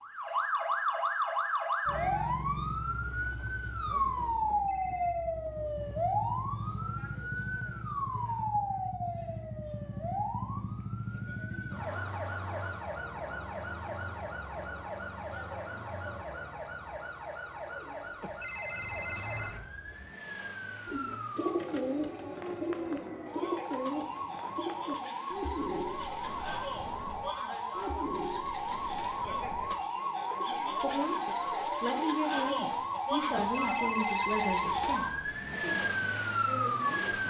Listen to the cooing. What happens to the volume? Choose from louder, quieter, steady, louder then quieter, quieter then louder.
quieter.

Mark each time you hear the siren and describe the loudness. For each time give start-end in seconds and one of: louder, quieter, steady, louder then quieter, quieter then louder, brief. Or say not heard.
0.0-37.2 quieter then louder.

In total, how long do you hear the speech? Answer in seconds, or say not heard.
7 s.